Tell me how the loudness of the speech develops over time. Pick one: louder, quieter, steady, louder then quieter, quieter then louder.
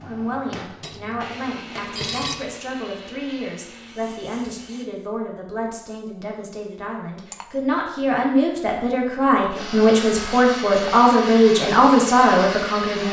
louder.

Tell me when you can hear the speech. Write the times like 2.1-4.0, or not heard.
0.0-13.0.